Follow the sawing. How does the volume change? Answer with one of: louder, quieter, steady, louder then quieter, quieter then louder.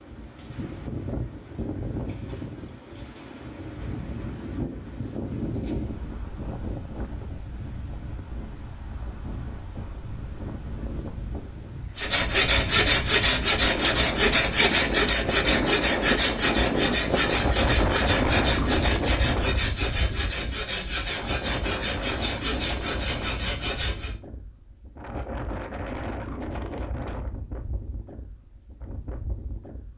quieter.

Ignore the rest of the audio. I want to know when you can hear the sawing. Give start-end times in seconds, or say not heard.
11.9-24.1.